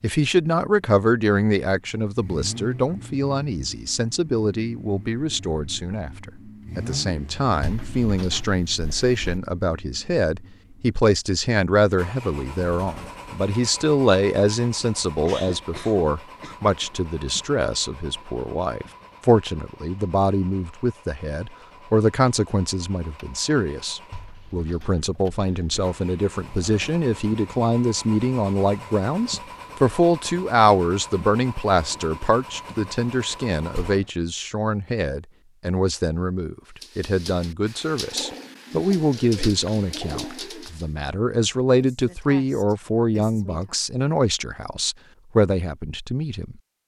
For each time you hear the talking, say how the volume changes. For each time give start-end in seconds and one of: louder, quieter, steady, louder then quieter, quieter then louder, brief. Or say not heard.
0.0-46.5 steady.